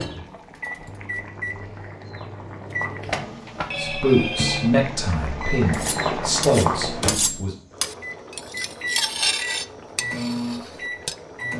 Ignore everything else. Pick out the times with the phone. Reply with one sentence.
You can hear the phone from 3.0 to 4.7 s.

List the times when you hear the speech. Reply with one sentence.
The speech can be heard from 3.8 to 7.5 s.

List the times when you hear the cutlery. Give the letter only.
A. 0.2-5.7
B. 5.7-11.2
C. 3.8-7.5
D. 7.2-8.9
B.